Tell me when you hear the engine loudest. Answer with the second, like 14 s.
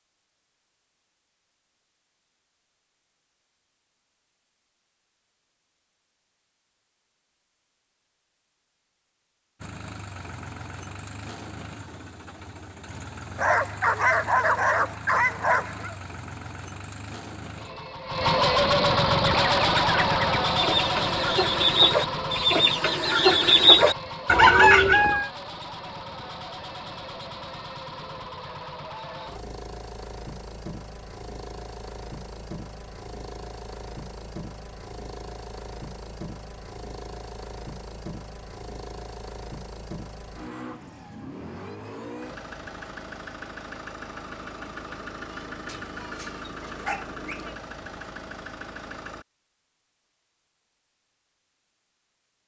19 s.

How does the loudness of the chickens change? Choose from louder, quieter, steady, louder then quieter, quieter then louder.
louder.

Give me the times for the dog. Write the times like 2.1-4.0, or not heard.
13.3-15.9, 45.6-47.4.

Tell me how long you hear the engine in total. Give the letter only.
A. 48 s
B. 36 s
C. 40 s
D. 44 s
C.